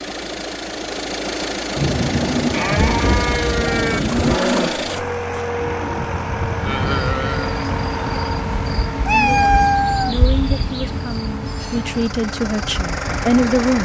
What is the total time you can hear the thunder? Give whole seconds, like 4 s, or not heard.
3 s.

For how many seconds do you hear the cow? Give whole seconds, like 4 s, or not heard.
6 s.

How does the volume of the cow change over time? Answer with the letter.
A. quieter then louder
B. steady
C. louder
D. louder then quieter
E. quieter
A.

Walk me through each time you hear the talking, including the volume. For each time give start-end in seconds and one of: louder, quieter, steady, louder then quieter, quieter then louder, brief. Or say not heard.
9.1-13.8 louder.